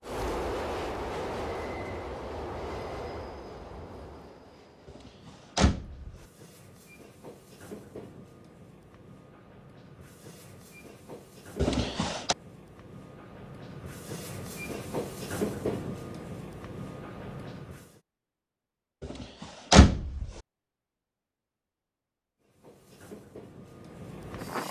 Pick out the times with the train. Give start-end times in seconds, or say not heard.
0.0-18.0, 22.4-24.6.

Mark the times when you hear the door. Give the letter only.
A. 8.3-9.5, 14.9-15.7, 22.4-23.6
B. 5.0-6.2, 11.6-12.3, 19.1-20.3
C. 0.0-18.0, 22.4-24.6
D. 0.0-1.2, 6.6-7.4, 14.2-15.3
B.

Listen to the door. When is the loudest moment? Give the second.
20 s.